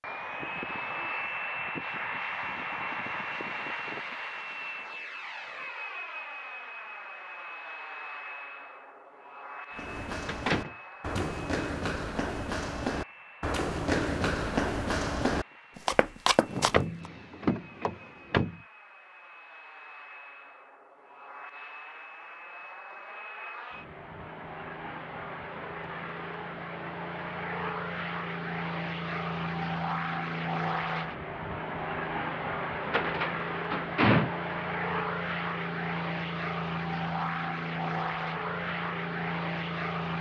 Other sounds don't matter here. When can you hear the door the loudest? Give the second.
34 s.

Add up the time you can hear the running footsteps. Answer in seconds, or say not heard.
7 s.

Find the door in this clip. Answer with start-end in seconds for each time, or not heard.
10.2-11.3, 16.4-18.6, 32.8-34.3.